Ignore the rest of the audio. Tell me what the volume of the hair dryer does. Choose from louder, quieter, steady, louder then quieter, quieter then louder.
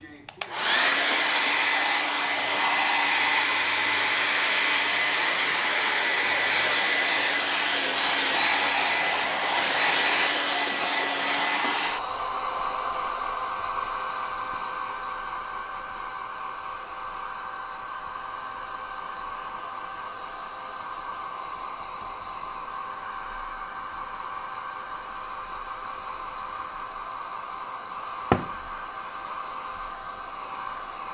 quieter.